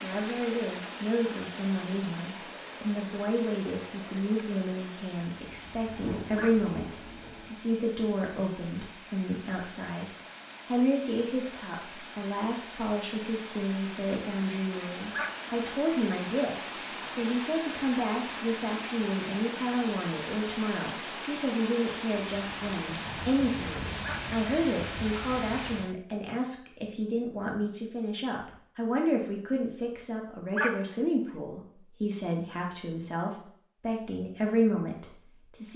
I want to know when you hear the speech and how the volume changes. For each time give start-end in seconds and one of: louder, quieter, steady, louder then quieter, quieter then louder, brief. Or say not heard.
0.0-35.7 steady.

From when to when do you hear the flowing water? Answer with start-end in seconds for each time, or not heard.
0.0-25.9.